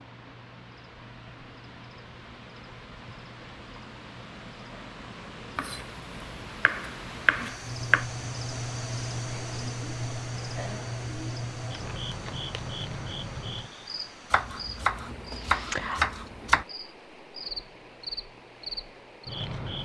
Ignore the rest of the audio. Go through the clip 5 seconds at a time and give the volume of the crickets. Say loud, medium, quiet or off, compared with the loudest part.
quiet, loud, loud, loud.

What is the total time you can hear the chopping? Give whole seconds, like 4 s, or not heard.
5 s.